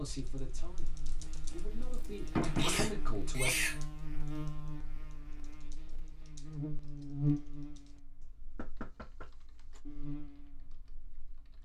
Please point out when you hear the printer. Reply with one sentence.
The printer can't be heard in this clip.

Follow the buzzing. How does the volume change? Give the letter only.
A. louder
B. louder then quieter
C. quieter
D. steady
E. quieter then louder
B.